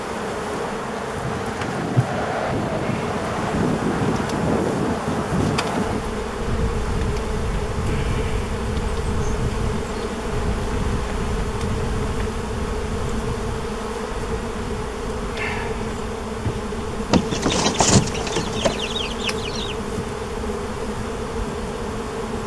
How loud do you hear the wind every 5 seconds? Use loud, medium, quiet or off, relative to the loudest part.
loud, loud, medium, quiet, quiet.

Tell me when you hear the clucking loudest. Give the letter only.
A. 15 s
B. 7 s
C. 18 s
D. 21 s
C.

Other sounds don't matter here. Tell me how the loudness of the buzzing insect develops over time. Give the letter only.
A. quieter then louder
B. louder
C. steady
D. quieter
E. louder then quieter
C.